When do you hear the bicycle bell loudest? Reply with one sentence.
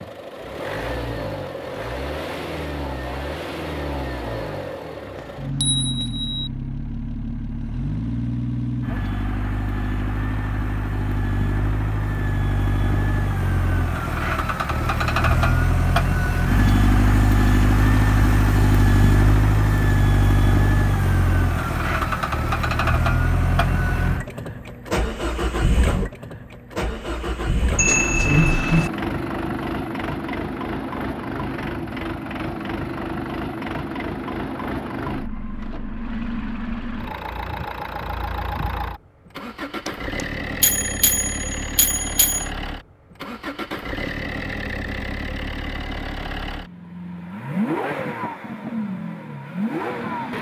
The volume of the bicycle bell peaks at 28 seconds.